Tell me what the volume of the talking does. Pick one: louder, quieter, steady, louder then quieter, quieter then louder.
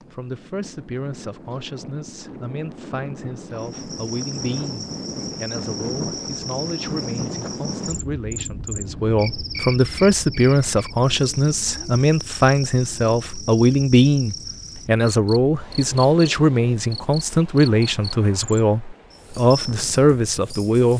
louder.